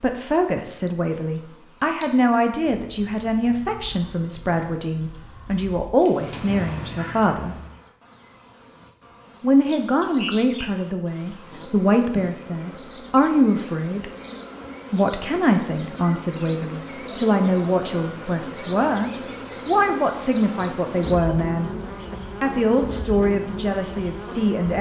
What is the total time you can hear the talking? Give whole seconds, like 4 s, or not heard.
21 s.